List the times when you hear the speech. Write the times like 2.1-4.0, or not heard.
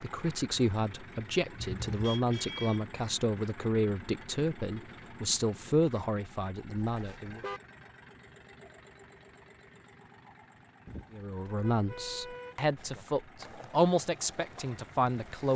0.0-7.4, 11.1-15.5.